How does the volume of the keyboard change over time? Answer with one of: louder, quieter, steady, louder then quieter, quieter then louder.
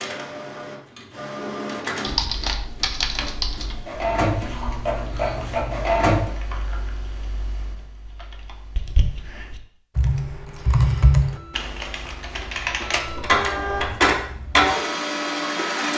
quieter then louder.